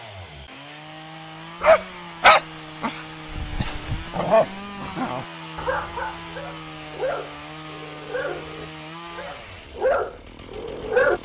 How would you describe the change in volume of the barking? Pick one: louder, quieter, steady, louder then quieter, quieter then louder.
quieter then louder.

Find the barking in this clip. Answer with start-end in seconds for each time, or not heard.
1.6-11.2.